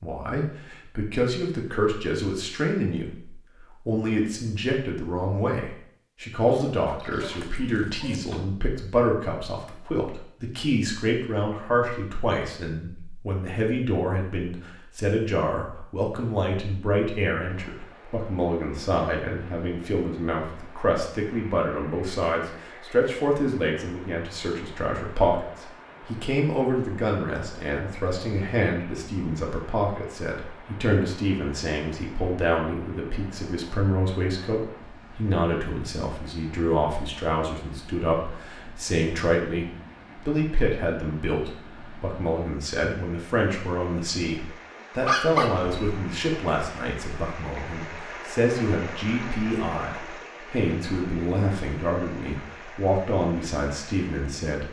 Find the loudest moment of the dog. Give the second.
45 s.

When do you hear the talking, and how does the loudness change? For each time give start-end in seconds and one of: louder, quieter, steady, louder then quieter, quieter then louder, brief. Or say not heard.
0.0-54.6 steady.